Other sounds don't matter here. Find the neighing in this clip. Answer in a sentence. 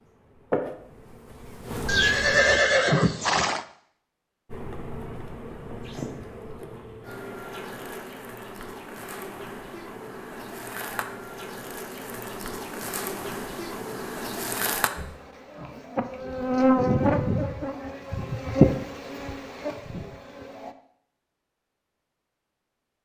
You can hear the neighing from 1.9 to 3.6 s.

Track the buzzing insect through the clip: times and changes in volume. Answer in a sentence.
You can hear the buzzing insect briefly from 0.5 to 2.6 s; and from 4.5 to 20.7 s, getting louder.